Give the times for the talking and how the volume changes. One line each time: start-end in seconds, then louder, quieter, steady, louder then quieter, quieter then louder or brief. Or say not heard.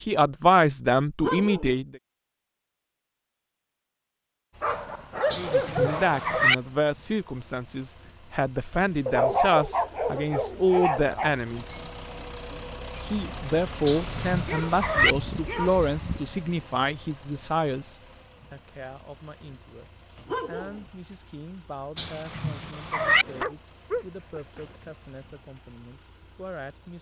0.0-1.9 brief
5.3-11.8 quieter then louder
13.0-26.9 quieter.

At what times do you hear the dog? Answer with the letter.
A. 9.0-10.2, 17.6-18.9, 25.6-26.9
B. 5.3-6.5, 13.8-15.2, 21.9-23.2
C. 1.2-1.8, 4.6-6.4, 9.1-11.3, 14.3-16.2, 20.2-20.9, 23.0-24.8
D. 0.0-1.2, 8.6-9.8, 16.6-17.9
C.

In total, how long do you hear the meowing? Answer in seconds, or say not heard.
4 s.